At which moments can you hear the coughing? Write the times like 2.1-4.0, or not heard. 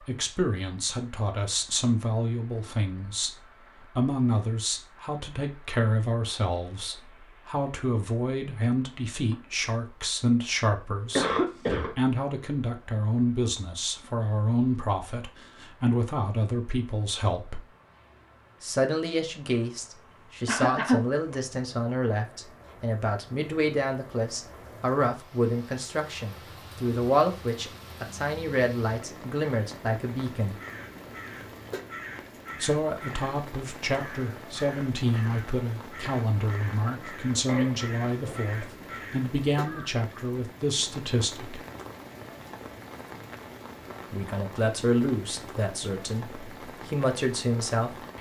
11.2-11.9, 20.4-21.0, 37.5-38.6.